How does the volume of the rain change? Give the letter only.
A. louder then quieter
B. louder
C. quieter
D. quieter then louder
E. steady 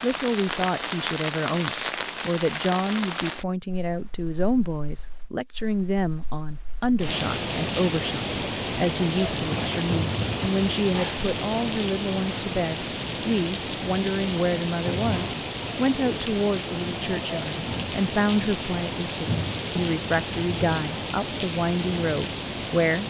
E.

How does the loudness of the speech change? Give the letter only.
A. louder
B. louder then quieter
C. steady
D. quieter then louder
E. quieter
C.